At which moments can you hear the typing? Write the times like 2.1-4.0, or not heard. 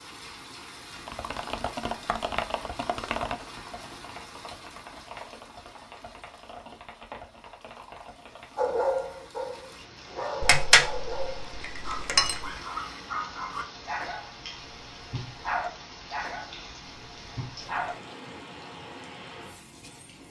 0.9-8.8.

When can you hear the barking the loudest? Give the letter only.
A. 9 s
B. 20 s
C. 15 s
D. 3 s
A.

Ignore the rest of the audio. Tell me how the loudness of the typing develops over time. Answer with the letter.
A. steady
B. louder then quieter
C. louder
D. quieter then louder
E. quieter
E.